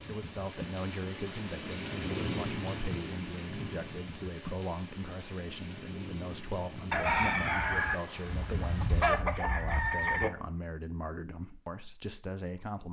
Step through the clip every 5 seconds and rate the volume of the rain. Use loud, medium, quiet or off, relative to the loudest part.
loud, medium, off.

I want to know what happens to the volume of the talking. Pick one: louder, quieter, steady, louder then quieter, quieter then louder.
steady.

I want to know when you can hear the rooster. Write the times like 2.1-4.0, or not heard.
6.9-10.3.